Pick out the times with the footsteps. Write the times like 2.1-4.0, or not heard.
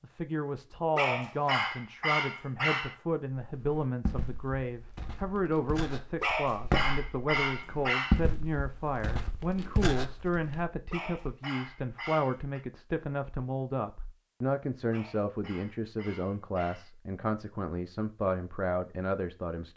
3.4-10.7.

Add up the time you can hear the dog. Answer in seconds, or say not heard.
8 s.